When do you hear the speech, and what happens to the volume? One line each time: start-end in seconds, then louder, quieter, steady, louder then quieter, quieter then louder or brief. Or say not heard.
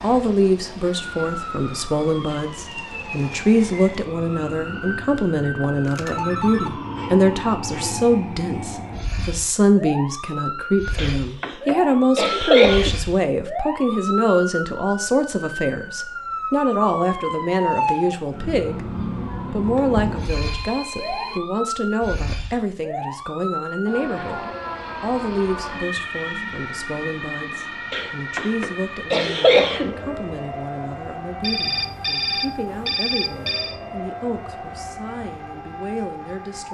0.0-36.6 quieter.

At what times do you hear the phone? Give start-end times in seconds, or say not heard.
5.6-6.7, 20.2-21.4, 31.4-33.8.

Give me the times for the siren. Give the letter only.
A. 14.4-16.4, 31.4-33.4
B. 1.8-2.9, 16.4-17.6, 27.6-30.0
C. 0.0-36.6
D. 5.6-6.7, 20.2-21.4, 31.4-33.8
C.